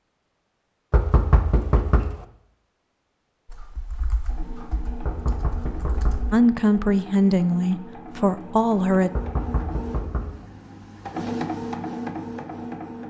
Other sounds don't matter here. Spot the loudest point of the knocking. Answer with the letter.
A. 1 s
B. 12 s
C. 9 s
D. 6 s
A.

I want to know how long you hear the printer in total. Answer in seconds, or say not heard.
9 s.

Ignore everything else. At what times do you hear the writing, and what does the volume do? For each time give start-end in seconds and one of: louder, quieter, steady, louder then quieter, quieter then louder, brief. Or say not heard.
not heard.